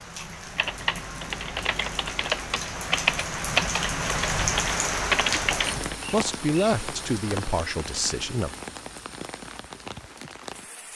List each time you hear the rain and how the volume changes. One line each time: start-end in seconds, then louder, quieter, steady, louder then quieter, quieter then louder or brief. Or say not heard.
0.0-10.9 louder then quieter.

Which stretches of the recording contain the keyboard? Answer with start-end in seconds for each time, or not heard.
0.6-6.0.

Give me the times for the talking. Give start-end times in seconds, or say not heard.
5.9-8.5.